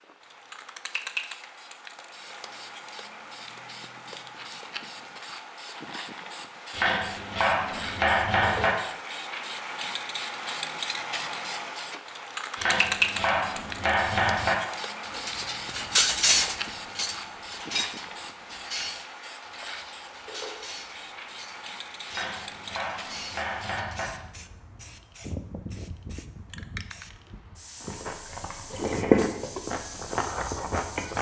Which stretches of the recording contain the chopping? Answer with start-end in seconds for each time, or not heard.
6.7-8.8, 12.6-14.6, 22.1-24.1.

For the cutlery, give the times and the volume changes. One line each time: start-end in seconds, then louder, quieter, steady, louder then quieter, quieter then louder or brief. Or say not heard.
15.0-24.1 quieter.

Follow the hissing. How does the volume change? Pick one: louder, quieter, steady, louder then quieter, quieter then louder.
louder then quieter.